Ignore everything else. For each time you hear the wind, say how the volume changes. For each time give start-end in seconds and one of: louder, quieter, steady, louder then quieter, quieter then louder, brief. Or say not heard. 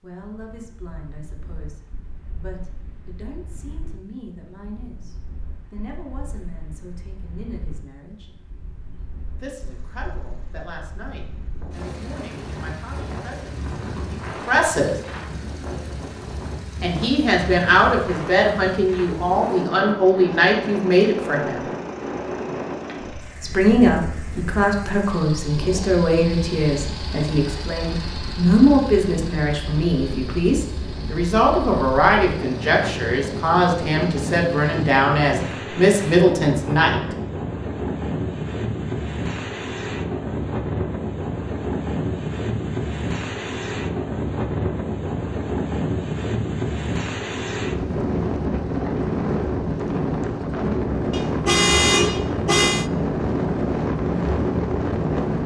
0.1-55.4 louder.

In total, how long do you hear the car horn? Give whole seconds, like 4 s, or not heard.
2 s.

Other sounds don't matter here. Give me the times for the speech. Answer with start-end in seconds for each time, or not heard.
0.0-8.3, 9.3-14.9, 16.8-21.6, 23.4-37.0.